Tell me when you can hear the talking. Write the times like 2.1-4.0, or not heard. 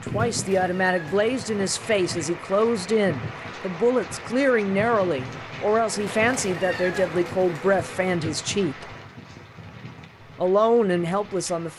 0.0-8.9, 10.3-11.7.